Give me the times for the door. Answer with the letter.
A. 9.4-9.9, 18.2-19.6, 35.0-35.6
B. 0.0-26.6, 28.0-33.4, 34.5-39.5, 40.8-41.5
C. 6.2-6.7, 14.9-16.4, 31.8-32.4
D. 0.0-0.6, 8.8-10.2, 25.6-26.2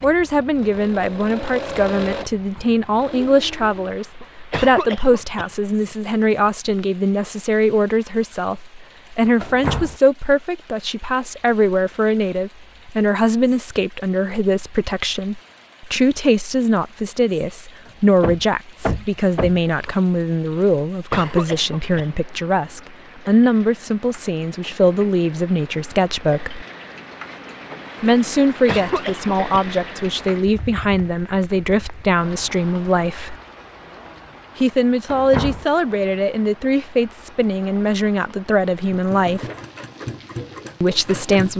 A.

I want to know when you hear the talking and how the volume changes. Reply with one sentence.
The talking can be heard from 0.0 to 26.6 s, at a steady volume; from 28.0 to 33.4 s, at a steady volume; from 34.5 to 39.5 s, at a steady volume; and briefly from 40.8 to 41.5 s.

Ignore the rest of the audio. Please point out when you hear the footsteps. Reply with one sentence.
You can't hear the footsteps here.